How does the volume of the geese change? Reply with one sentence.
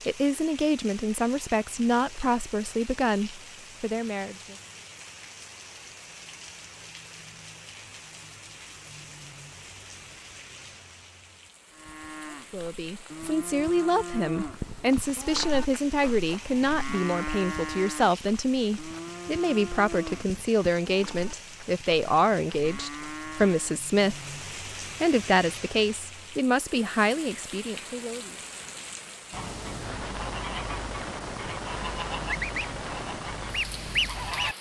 The volume of the geese goes up.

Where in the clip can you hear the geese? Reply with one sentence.
You can hear the geese from 29.3 to 34.5 s.